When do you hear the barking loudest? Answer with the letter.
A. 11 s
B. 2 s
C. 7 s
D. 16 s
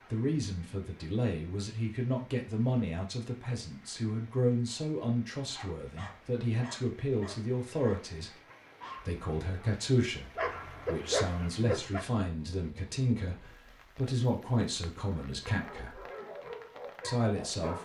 A.